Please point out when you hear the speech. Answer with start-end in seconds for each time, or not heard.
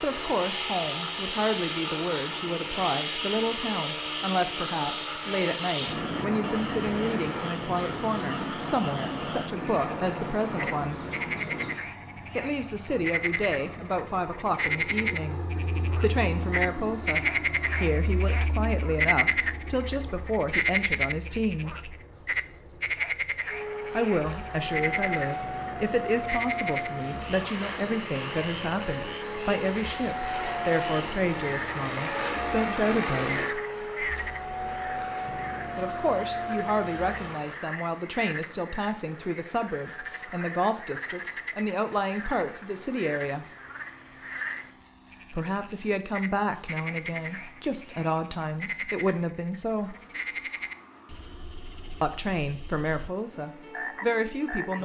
0.0-11.0, 12.3-21.9, 23.9-33.6, 35.8-43.5, 45.3-50.0, 52.0-54.8.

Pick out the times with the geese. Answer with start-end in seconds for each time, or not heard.
not heard.